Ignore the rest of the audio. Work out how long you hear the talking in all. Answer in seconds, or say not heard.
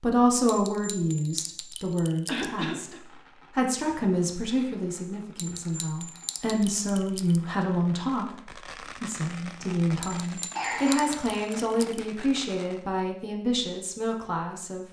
14 s.